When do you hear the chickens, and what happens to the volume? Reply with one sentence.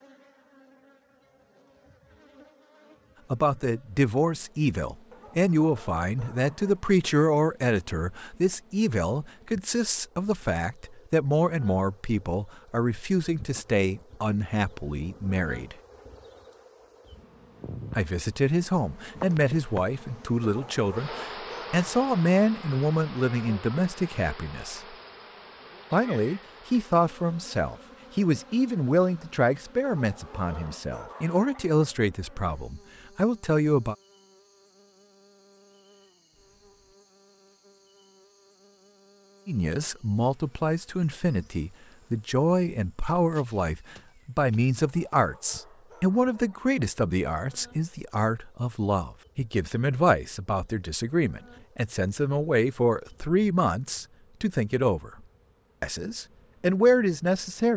You can't hear the chickens here.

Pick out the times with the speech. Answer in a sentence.
You can hear the speech from 3.3 to 15.8 s, from 17.9 to 24.8 s, from 25.9 to 34.0 s, from 39.5 to 55.1 s and from 55.8 to 57.7 s.